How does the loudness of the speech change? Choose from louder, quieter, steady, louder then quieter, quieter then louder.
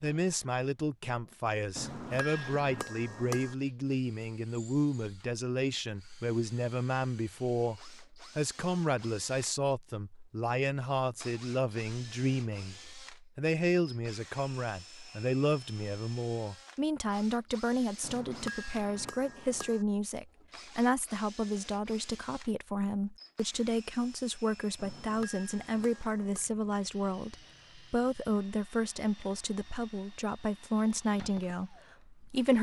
steady.